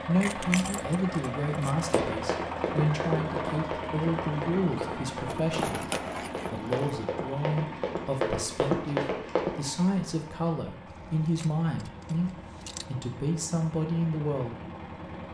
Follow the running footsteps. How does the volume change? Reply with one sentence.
The loudness of the running footsteps goes down, then up.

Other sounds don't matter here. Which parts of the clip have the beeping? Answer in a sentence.
The beeping can't be heard in this clip.